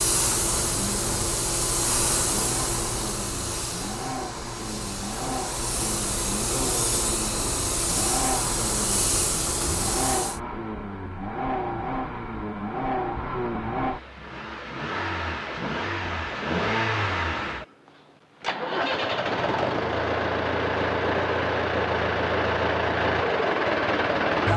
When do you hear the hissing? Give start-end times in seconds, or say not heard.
0.0-10.4.